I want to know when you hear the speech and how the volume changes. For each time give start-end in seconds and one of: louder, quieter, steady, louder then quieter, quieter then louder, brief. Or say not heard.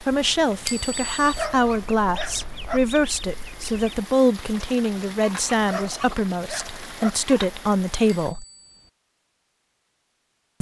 0.0-8.4 steady.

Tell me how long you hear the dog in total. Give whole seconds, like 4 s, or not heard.
3 s.